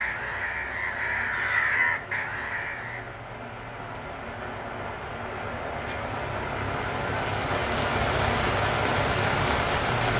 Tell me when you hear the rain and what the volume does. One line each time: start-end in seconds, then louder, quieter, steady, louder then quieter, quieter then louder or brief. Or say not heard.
0.0-10.1 louder.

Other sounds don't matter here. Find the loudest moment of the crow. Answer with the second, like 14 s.
2 s.